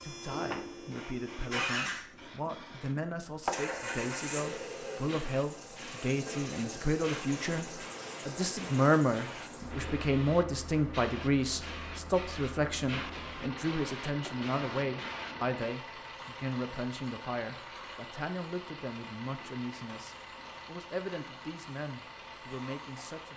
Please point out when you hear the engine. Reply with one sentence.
You can hear the engine from 0.0 to 23.3 s.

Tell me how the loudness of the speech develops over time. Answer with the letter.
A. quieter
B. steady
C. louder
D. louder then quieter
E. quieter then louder
D.